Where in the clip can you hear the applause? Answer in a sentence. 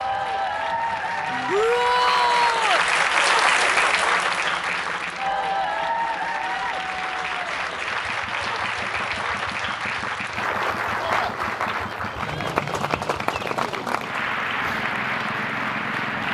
You can hear the applause from 0.0 to 16.2 s.